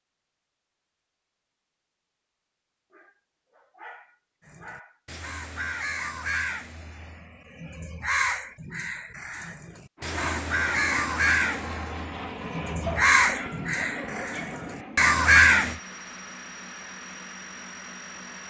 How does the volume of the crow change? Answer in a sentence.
The loudness of the crow goes up.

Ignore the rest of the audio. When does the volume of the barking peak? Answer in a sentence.
The volume of the barking peaks at 13 seconds.